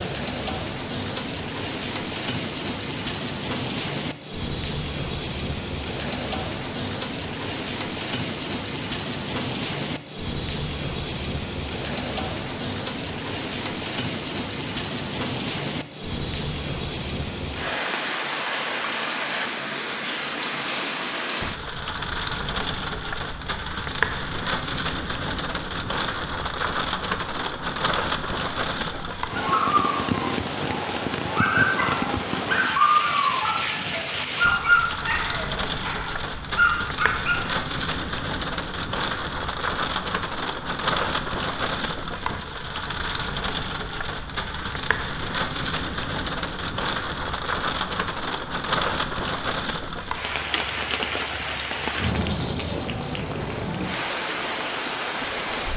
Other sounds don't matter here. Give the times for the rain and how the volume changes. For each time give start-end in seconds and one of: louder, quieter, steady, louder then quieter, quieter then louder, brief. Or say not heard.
0.0-55.7 steady.